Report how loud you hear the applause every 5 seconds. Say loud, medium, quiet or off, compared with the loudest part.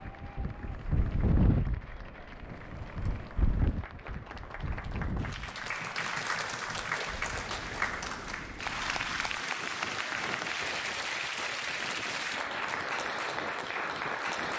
quiet, loud, loud.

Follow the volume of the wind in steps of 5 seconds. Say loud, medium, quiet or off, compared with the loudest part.
loud, medium, medium.